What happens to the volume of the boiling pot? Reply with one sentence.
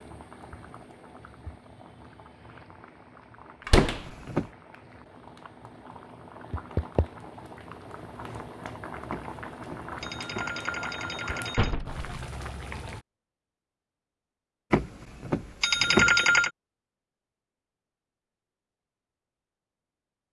The volume of the boiling pot goes up.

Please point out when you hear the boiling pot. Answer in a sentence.
The boiling pot can be heard from 0.0 to 13.1 s.